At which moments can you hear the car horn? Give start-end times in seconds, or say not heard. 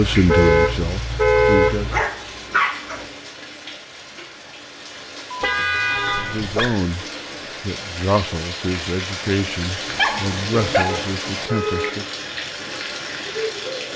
0.1-2.0, 5.4-6.7, 10.8-11.9.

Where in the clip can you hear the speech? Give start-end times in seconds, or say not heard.
0.0-1.9, 6.2-12.1.